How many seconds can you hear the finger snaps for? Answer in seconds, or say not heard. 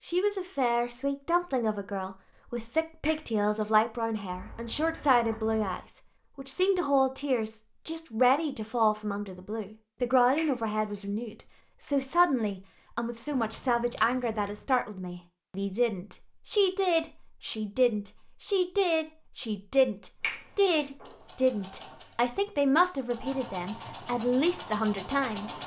2 s.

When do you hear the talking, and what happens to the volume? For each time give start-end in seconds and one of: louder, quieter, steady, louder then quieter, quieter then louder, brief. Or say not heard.
0.1-25.6 steady.